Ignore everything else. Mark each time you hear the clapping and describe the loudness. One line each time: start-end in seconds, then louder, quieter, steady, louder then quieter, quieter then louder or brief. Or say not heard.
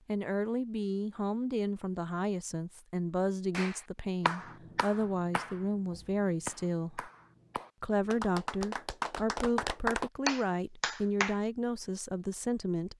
3.5-11.3 quieter then louder.